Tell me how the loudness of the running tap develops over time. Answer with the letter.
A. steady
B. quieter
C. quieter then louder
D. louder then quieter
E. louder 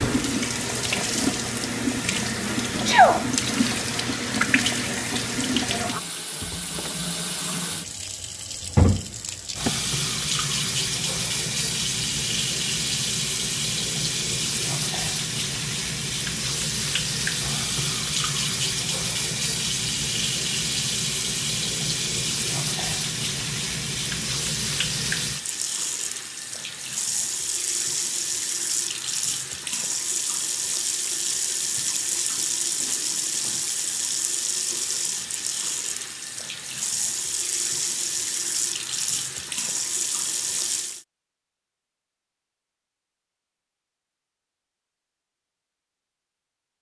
A.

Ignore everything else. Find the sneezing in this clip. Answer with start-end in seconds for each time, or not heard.
2.5-3.2.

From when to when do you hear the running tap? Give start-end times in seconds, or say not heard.
0.0-41.0.